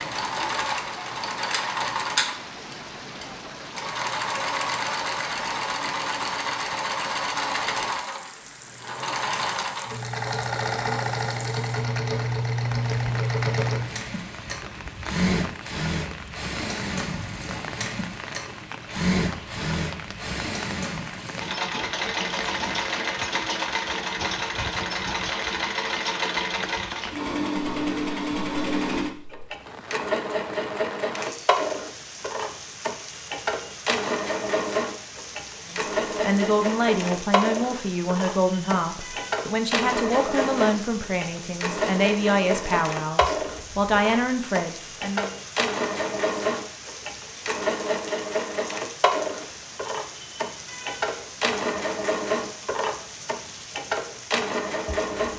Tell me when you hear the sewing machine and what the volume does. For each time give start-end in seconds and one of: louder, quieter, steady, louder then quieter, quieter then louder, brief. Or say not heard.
0.0-55.3 steady.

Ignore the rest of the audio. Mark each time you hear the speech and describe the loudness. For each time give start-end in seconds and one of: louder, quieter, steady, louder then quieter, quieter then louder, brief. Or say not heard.
35.6-45.4 steady.